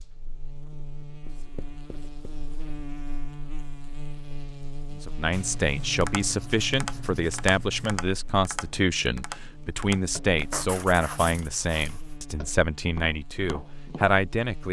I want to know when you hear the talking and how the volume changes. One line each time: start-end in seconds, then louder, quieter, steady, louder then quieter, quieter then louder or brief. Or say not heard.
5.0-14.6 steady.